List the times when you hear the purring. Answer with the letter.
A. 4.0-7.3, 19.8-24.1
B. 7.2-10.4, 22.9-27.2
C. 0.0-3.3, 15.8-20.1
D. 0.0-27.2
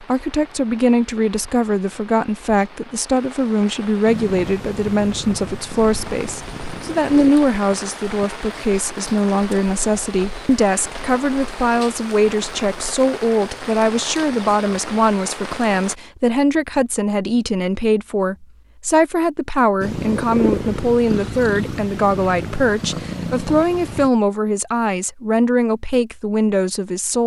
A.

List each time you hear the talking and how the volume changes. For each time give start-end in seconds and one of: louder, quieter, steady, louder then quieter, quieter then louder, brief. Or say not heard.
0.0-27.2 steady.